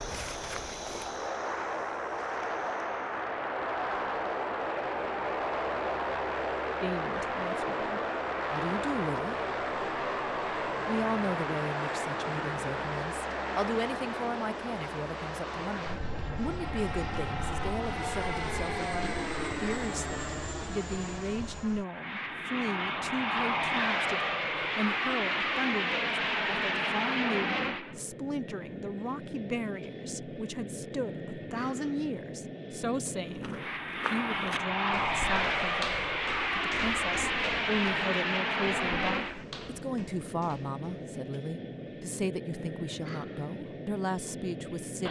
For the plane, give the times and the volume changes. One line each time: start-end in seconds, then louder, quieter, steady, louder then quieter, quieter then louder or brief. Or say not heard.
0.0-45.0 steady.